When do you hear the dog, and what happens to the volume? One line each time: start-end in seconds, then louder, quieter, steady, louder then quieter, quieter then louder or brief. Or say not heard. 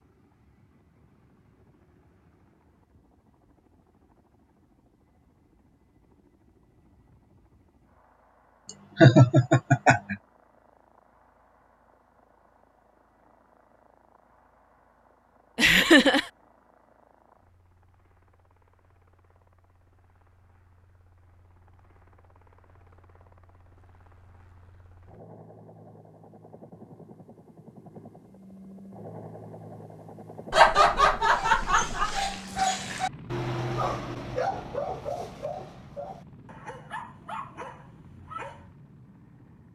31.2-38.8 quieter.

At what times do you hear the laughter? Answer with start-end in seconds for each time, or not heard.
8.9-10.2, 15.6-16.2, 30.5-32.3.